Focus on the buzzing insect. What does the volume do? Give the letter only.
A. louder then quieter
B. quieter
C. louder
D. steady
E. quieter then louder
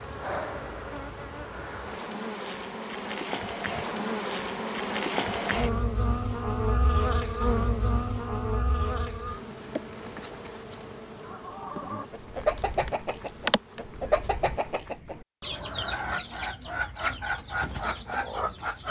A.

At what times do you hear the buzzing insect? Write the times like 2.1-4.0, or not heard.
0.0-14.8.